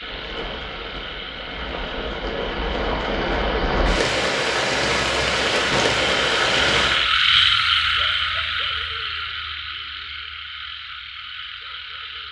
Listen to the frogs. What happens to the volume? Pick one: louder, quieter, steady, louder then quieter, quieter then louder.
louder then quieter.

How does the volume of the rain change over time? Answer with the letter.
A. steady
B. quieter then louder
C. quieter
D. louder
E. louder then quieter
D.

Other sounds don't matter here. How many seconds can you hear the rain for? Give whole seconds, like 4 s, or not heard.
7 s.